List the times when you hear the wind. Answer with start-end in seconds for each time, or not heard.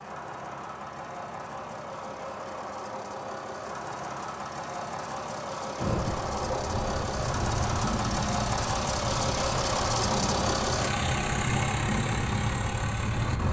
5.8-13.4.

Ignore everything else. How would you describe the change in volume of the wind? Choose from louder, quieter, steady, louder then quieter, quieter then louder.
steady.